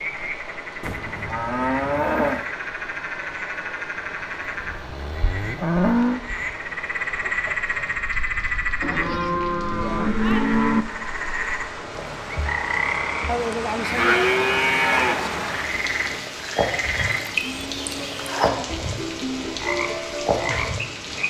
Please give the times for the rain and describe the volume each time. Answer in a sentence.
You can hear the rain from 0.0 to 21.2 s, getting louder.